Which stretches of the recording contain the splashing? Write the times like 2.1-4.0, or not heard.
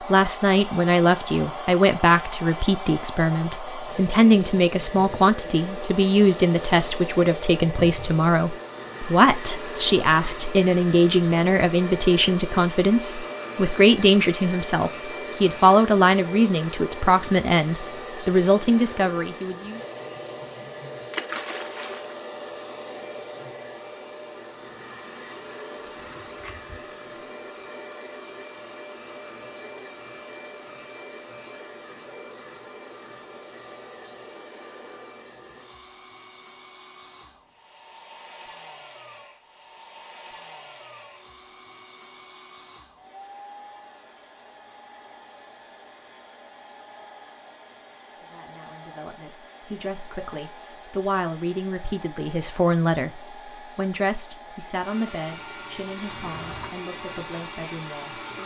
21.1-22.2.